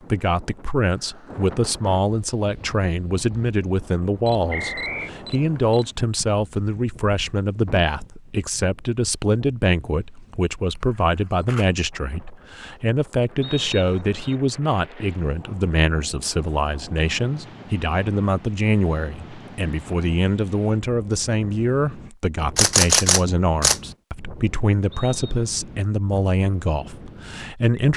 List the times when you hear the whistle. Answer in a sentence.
You can hear the whistle from 4.5 to 5.1 s, from 13.4 to 14.3 s and from 24.9 to 25.5 s.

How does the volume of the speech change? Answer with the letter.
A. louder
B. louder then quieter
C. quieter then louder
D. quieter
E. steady
E.